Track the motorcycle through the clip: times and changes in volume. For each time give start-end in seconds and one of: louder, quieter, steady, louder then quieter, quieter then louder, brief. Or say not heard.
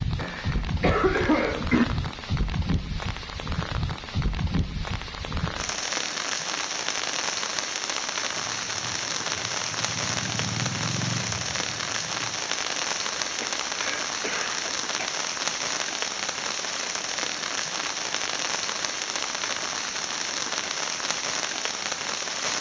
8.3-12.3 louder then quieter.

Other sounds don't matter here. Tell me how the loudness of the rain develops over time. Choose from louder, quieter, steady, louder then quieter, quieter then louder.
steady.